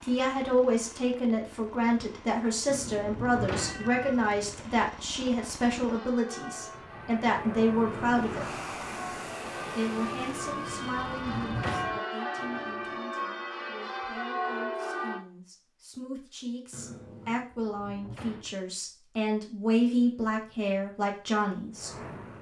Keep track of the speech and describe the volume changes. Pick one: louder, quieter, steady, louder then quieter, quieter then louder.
quieter then louder.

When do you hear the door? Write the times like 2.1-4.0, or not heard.
3.0-3.9, 11.2-12.0, 17.5-18.6.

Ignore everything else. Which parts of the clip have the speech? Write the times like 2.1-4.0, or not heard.
0.0-8.6, 9.8-21.9.